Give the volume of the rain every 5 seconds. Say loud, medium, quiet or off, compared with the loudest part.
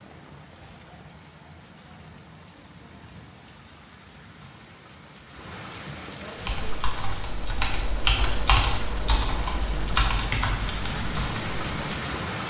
quiet, medium, loud.